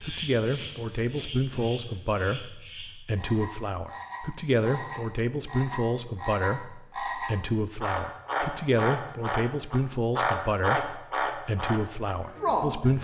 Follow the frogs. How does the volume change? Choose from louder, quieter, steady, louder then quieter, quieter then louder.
louder.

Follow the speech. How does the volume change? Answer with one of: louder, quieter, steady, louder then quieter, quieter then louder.
steady.